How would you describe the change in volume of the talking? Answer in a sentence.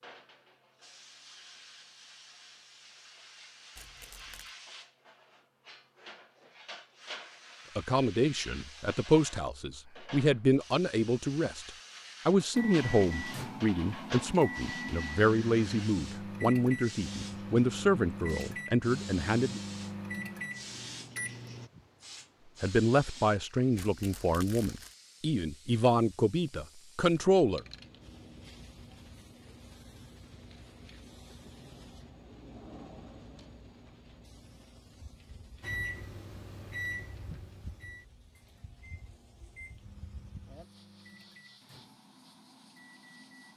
The loudness of the talking stays about the same.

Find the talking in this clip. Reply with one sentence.
The talking can be heard from 7.8 to 19.6 s and from 22.6 to 27.6 s.